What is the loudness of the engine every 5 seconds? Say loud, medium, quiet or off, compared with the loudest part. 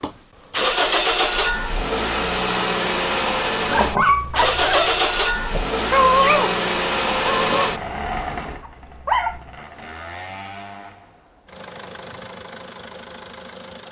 loud, loud, quiet.